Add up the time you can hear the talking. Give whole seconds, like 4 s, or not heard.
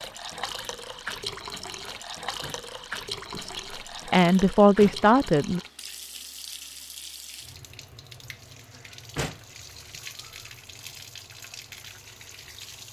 2 s.